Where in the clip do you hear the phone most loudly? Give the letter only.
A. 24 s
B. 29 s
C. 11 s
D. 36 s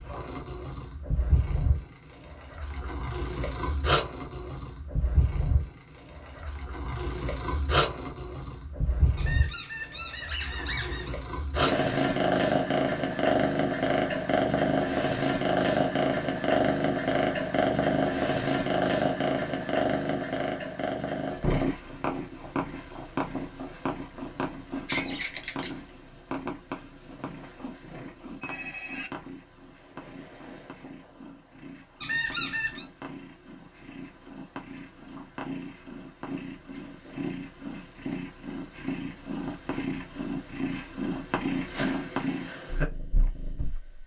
B.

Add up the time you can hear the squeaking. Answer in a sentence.
The squeaking can be heard for 4 seconds in total.